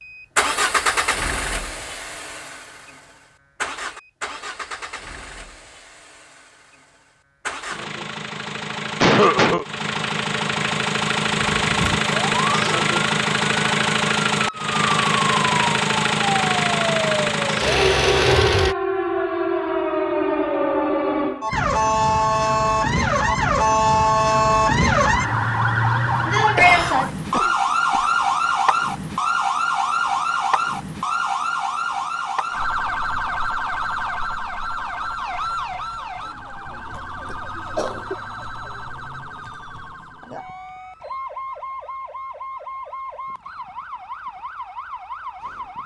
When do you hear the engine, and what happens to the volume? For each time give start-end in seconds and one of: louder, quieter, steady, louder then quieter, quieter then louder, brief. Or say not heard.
0.0-18.8 quieter then louder.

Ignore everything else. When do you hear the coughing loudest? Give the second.
9 s.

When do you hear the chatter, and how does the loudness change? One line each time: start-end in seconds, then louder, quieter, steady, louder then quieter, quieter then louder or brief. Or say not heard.
not heard.